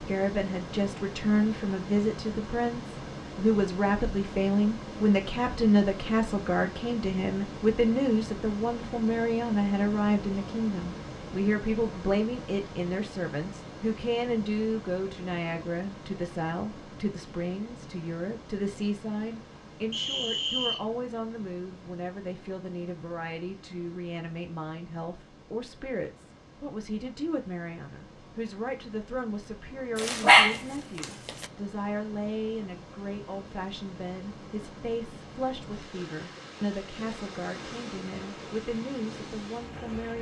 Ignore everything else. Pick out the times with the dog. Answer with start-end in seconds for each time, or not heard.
29.9-31.4.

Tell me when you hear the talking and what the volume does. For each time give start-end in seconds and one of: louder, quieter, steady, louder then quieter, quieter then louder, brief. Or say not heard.
0.0-40.1 quieter.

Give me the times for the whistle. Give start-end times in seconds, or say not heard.
19.9-20.8.